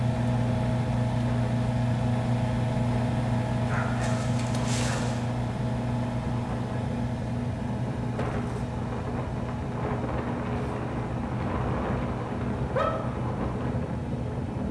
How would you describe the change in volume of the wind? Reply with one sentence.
The loudness of the wind goes up.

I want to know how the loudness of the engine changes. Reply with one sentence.
The volume of the engine goes down.